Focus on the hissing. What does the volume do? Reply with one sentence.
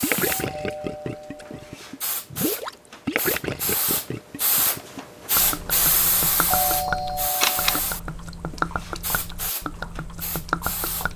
The volume of the hissing goes up, then down.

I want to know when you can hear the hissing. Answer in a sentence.
The hissing can be heard from 0.0 to 11.1 s.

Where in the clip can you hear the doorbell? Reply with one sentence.
You can hear the doorbell from 0.1 to 1.8 s and from 6.5 to 7.8 s.